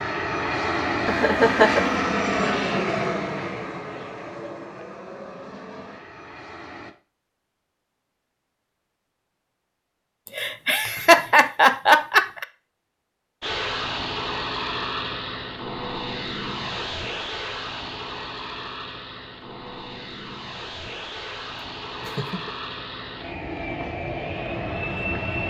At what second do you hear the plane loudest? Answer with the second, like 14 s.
2 s.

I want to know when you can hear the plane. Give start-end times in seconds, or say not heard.
0.0-7.0, 13.4-25.4.